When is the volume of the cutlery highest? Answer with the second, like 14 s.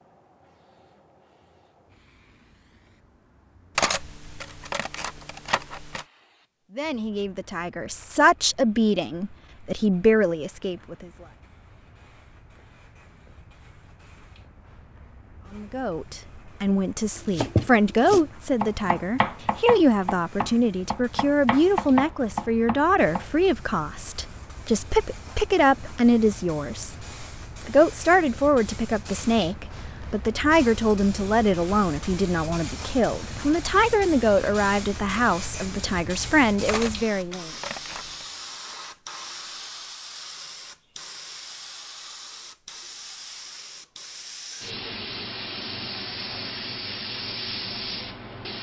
4 s.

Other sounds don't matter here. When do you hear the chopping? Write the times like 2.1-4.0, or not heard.
17.2-23.3.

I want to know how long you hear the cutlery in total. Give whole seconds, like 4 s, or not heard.
4 s.